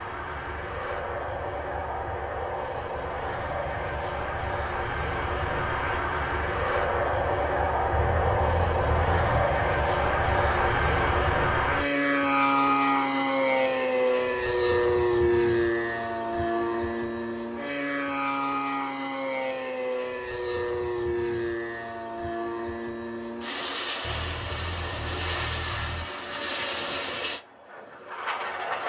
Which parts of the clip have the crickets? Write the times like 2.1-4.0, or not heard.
not heard.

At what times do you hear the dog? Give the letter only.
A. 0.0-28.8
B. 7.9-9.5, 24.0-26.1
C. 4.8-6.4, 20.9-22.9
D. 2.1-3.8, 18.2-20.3
B.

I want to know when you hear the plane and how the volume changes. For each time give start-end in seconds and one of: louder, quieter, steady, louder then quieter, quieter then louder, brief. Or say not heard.
0.0-28.8 louder then quieter.